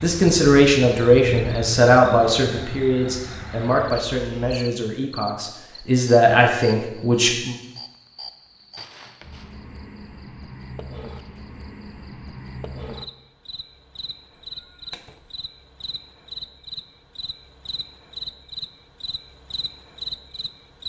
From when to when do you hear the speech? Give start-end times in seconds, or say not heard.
0.0-7.5.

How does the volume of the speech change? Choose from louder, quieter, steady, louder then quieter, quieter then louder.
quieter then louder.